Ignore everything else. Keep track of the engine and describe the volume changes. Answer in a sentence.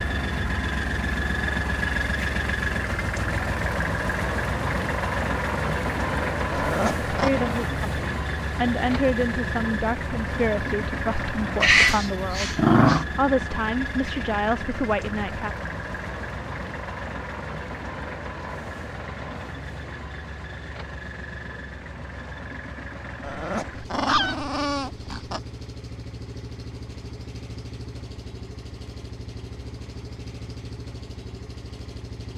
The volume of the engine goes down.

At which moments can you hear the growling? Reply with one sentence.
You can hear the growling from 6.5 to 7.3 s, from 11.6 to 13.1 s and from 23.2 to 25.4 s.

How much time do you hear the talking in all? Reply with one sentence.
The talking can be heard for 8 seconds in total.